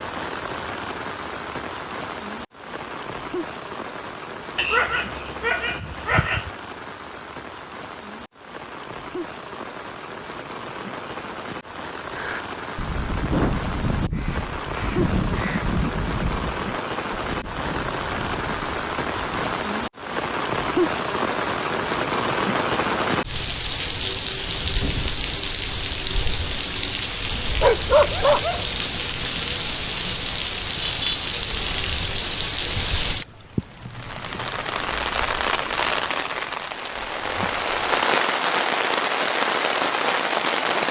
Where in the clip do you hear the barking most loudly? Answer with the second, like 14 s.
28 s.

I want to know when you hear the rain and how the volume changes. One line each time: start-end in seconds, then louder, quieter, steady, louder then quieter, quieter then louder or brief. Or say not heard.
0.0-40.8 louder.